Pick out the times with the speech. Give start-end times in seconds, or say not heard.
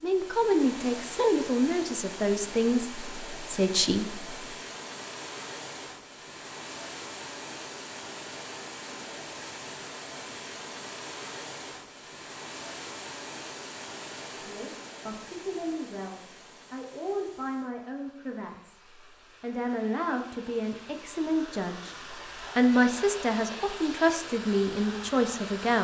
0.0-4.4, 14.3-25.7.